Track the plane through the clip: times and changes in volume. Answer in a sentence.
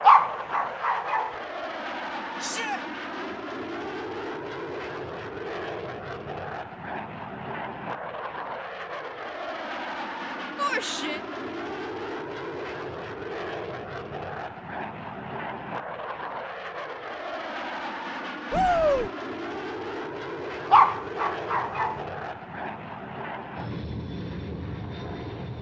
The plane can be heard from 0.0 to 25.5 s, at a steady volume.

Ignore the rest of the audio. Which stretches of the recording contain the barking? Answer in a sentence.
You can hear the barking from 0.0 to 1.4 s and from 20.7 to 22.0 s.